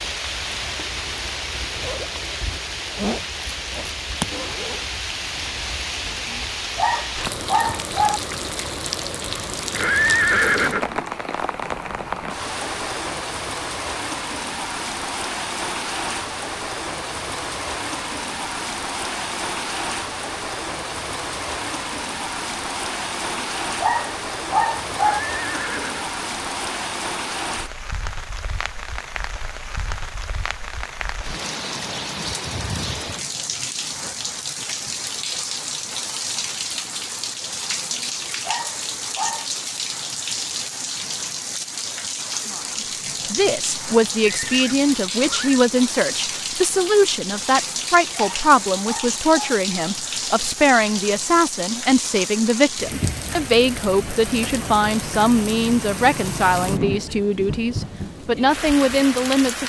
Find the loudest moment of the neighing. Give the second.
10 s.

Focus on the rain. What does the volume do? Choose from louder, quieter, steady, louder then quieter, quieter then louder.
steady.